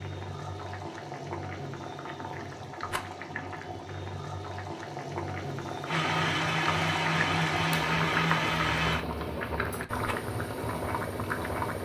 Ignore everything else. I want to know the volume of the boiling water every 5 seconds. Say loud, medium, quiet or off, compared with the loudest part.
medium, loud, loud.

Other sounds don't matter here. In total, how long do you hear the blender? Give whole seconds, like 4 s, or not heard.
3 s.